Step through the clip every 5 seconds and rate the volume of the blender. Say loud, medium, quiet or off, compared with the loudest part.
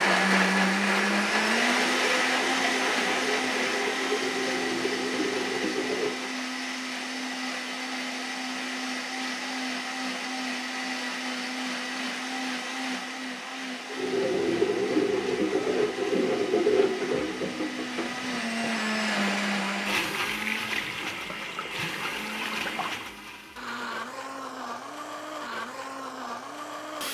loud, medium, medium, medium, medium, medium.